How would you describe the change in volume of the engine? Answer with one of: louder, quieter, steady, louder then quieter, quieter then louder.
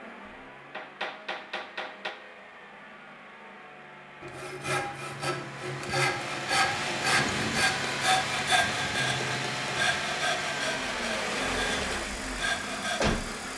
louder.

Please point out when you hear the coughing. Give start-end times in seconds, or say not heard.
not heard.